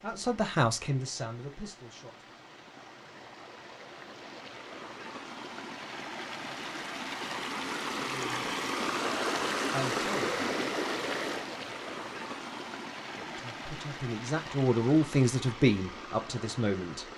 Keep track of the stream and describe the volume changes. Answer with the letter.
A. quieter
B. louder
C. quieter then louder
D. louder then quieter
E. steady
D.